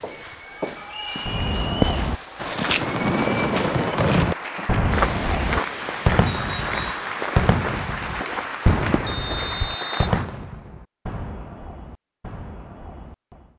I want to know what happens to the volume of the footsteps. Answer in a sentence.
The loudness of the footsteps goes down.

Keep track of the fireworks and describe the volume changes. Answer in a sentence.
The loudness of the fireworks goes down.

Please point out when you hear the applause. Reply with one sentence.
You can hear the applause from 0.0 to 10.3 s.